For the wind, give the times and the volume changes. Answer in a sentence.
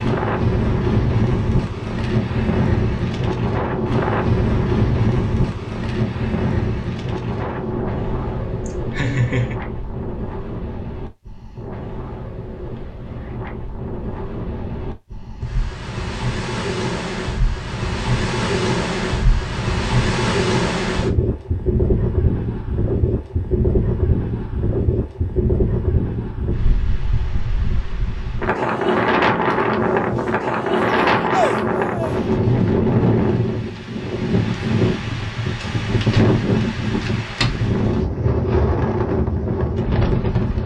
The wind can be heard from 0.0 to 40.6 s, getting quieter then louder.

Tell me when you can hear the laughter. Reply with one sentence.
You can hear the laughter from 8.7 to 9.6 s and from 30.8 to 32.2 s.